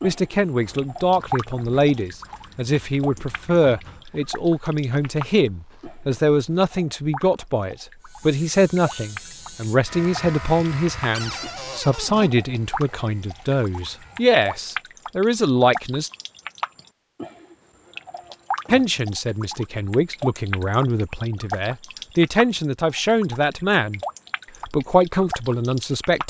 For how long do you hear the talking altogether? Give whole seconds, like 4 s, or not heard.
23 s.